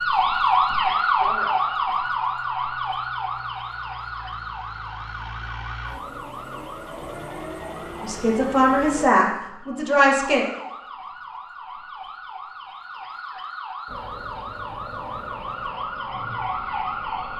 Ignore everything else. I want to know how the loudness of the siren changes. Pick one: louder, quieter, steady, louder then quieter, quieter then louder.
quieter then louder.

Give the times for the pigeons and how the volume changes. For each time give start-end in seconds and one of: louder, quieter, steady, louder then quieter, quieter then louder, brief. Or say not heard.
not heard.